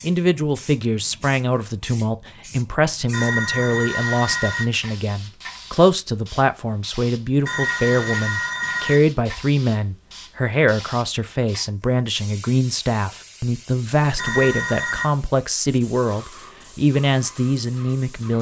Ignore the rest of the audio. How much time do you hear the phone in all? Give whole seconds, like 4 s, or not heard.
4 s.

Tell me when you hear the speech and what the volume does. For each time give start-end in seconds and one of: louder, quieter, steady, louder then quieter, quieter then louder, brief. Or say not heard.
0.0-18.3 steady.